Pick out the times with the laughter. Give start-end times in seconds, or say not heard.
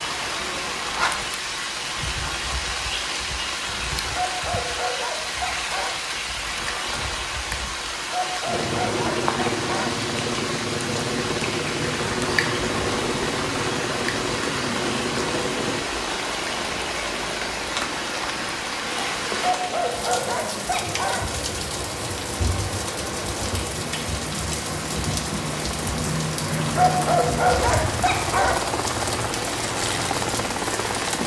not heard.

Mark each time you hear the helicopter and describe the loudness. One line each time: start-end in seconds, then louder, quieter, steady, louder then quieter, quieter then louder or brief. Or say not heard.
8.4-31.2 quieter then louder.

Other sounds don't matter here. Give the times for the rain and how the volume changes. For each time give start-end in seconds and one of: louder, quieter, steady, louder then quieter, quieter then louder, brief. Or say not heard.
0.0-31.2 steady.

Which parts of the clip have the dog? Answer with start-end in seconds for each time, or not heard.
4.2-6.0, 8.1-9.9, 19.4-21.3, 26.8-28.6.